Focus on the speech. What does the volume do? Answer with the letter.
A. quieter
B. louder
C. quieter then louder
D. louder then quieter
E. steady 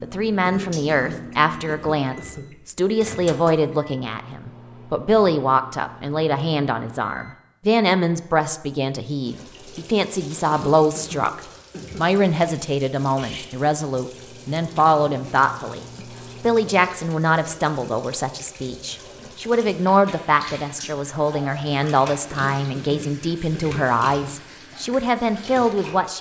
E.